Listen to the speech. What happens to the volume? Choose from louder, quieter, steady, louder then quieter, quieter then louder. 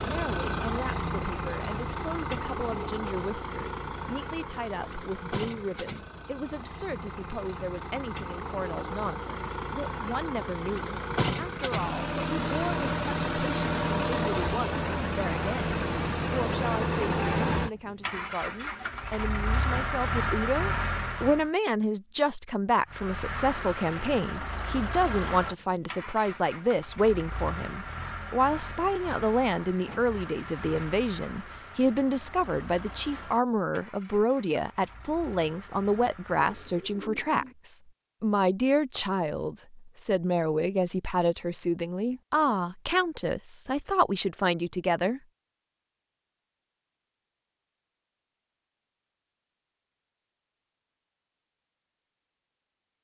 louder.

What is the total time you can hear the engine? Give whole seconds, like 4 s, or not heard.
36 s.